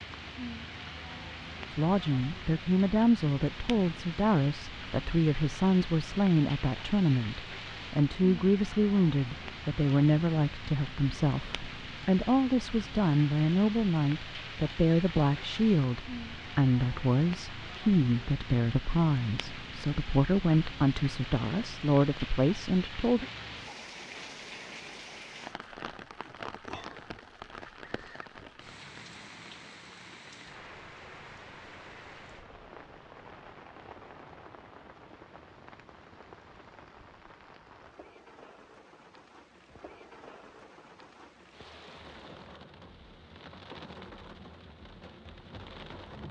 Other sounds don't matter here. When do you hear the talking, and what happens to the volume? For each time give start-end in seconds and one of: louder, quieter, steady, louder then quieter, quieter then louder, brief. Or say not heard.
1.7-23.2 steady.